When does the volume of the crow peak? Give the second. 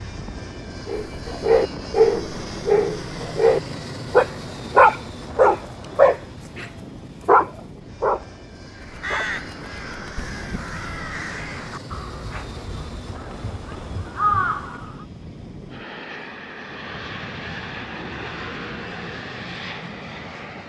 14 s.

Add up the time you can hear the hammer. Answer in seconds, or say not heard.
not heard.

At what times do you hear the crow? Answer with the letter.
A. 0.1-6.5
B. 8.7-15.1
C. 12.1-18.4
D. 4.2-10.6
B.